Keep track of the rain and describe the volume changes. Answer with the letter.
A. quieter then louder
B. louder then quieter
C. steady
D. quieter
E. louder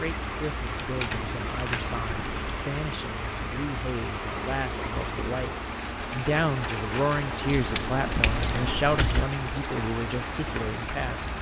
C.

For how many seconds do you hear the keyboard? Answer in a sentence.
The keyboard can be heard for 4 seconds in total.